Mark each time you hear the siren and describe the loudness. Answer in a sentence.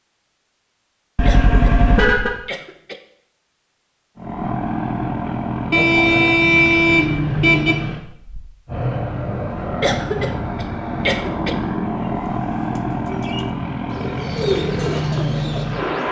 The siren can't be heard in this clip.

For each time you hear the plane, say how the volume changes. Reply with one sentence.
You can hear the plane from 4.2 to 16.0 s, at a steady volume.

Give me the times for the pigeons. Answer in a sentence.
You can hear the pigeons from 12.1 to 16.0 s.